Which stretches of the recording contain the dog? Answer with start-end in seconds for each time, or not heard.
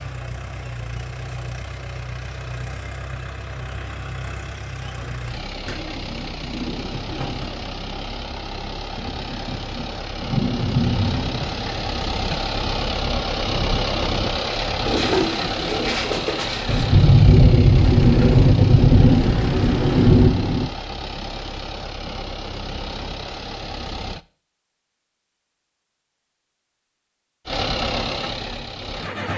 not heard.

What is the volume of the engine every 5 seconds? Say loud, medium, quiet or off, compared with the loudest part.
medium, medium, loud, loud, medium, loud.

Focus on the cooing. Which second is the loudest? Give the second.
15 s.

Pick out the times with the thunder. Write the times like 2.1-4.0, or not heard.
8.9-11.9, 16.6-20.6.